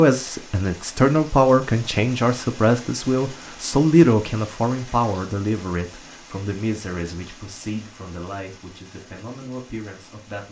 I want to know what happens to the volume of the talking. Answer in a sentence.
The loudness of the talking goes down.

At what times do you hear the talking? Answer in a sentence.
You can hear the talking from 0.0 to 10.4 s.